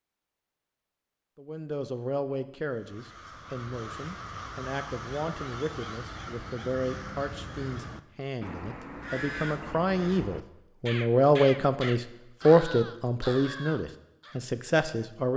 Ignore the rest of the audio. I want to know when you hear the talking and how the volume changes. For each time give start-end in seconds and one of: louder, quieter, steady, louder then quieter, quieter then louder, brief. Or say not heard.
1.4-15.3 louder.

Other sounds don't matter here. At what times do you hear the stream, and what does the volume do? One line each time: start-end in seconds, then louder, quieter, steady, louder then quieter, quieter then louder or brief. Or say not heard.
not heard.